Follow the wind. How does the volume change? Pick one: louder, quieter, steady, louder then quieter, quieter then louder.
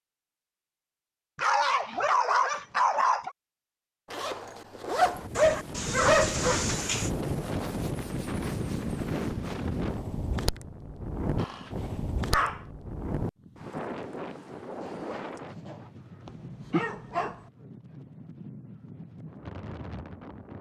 quieter.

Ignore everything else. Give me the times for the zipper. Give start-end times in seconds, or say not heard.
4.1-5.3, 7.7-9.5, 14.8-15.9.